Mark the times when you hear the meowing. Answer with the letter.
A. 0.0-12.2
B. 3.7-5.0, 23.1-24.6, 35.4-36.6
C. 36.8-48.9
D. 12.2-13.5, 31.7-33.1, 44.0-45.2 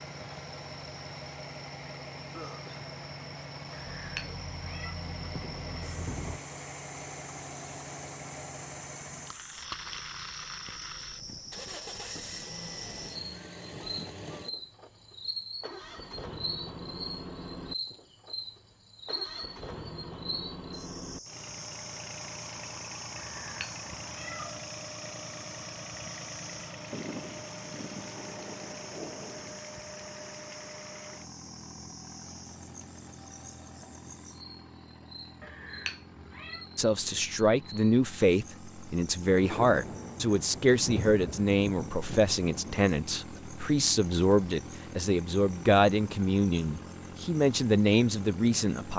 B.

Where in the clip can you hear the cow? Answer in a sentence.
You can't hear the cow here.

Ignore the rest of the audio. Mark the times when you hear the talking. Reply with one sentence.
You can hear the talking from 36.8 to 48.9 s.